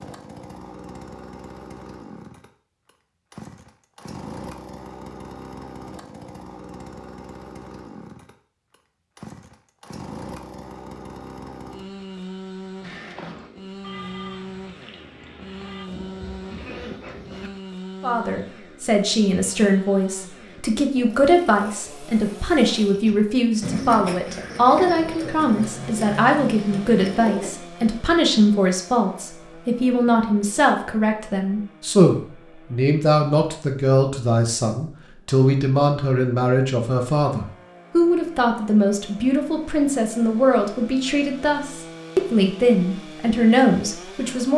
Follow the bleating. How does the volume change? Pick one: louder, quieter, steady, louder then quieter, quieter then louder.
quieter then louder.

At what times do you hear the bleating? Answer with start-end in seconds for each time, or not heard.
12.8-17.5.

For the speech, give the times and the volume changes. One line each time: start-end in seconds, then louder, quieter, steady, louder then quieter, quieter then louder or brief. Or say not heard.
18.0-44.5 steady.